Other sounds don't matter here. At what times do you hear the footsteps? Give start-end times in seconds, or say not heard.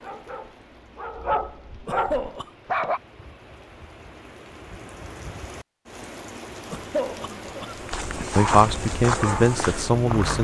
7.7-10.3.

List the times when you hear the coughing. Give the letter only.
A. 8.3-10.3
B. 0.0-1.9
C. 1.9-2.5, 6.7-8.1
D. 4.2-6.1
C.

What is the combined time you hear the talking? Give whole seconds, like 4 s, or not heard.
2 s.